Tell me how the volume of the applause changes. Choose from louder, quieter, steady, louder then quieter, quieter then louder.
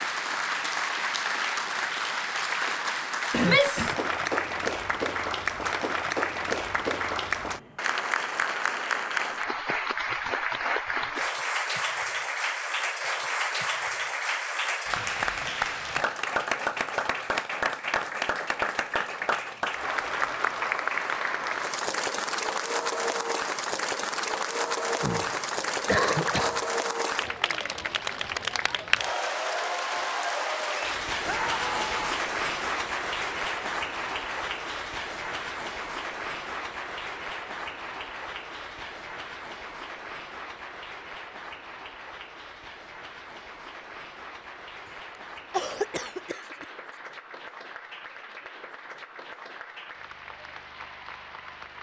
quieter.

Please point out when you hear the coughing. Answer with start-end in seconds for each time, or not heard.
3.3-4.0, 25.0-26.6, 45.5-46.6.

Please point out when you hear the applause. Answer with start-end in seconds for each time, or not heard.
0.0-51.7.